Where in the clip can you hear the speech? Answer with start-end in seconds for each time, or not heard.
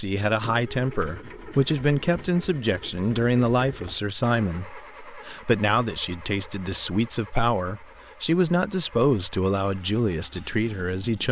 0.0-11.2.